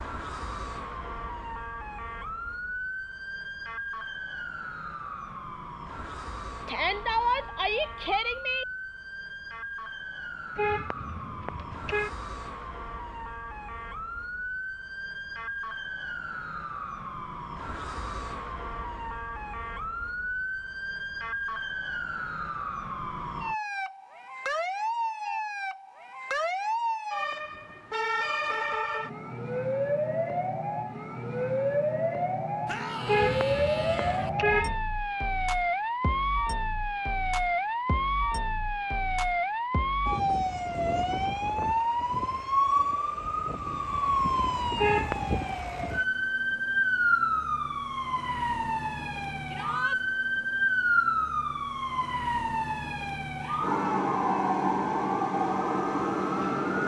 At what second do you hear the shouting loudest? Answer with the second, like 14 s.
7 s.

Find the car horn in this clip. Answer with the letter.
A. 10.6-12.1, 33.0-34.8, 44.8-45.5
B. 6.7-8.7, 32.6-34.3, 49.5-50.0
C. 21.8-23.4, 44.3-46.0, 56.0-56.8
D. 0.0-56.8
A.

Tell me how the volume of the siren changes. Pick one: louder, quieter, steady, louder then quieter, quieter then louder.
louder.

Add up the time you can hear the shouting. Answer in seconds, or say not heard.
4 s.